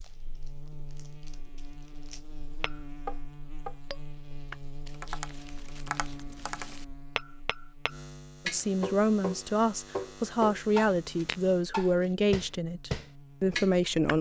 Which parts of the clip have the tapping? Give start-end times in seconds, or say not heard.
2.6-14.1.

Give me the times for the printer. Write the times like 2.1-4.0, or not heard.
not heard.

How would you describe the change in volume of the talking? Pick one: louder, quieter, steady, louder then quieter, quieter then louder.
steady.